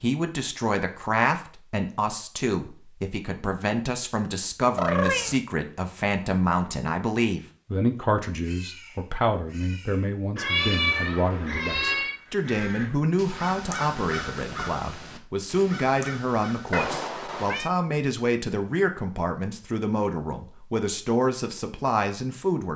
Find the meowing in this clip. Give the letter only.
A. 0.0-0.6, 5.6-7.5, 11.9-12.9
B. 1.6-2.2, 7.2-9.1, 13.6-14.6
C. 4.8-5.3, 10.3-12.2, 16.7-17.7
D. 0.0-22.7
C.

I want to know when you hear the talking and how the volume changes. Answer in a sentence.
The talking can be heard from 0.0 to 22.7 s, at a steady volume.